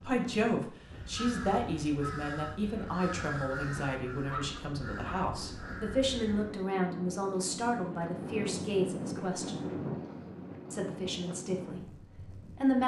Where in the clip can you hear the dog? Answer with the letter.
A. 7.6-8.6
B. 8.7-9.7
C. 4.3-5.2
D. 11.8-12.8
C.